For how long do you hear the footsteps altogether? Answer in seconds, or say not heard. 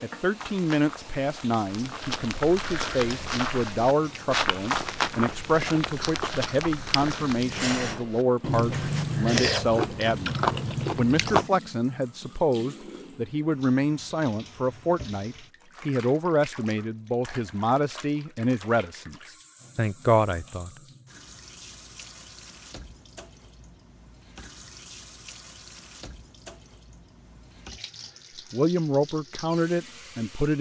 9 s.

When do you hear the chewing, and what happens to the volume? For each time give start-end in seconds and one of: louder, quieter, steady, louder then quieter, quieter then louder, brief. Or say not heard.
3.0-11.5 louder.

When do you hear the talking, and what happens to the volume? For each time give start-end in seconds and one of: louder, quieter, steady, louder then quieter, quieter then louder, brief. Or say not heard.
0.0-19.1 steady
19.8-20.7 brief
28.5-30.5 brief.